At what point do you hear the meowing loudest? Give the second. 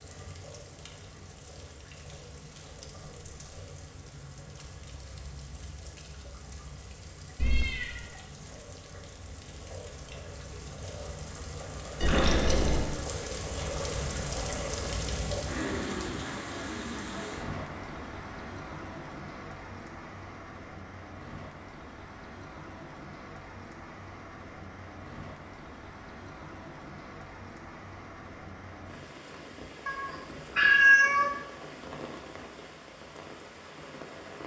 31 s.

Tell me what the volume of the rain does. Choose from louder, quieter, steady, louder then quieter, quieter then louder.
louder then quieter.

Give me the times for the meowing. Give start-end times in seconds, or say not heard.
7.3-8.1, 12.0-12.9, 29.9-31.3.